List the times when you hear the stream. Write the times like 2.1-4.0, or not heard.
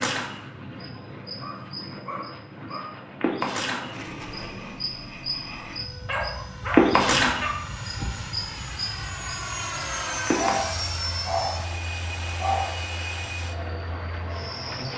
not heard.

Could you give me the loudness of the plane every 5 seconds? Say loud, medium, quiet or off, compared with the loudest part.
medium, loud, loud.